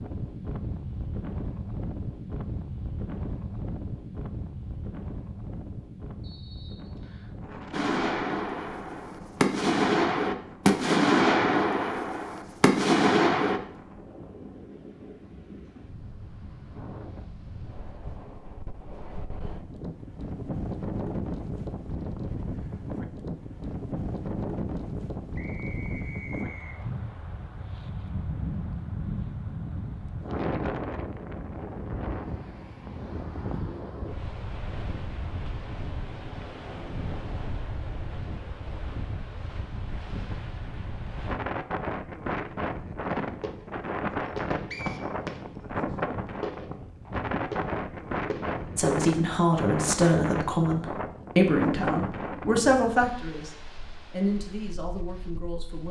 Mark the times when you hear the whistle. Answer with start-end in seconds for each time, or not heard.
6.2-7.3, 25.4-26.8, 44.7-45.3.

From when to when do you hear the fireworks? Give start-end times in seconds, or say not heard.
7.7-13.6, 43.0-48.9.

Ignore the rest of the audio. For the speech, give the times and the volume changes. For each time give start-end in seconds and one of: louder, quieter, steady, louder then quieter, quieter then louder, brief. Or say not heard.
48.8-55.8 quieter.